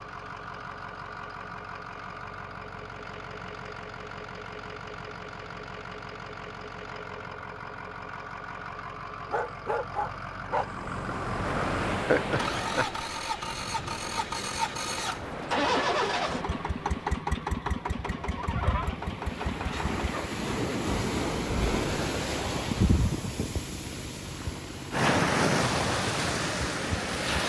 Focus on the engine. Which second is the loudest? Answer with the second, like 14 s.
16 s.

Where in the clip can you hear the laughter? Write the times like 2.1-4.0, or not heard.
12.0-13.1.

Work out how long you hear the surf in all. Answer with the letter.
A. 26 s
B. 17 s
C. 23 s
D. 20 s
B.